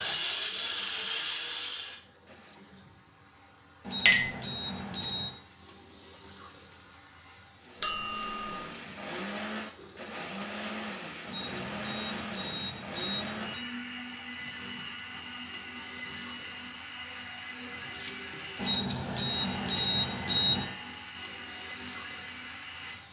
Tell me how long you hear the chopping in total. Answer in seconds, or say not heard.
not heard.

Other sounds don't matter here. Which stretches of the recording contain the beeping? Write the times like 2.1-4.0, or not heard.
3.8-5.3, 11.2-13.7, 18.6-20.8.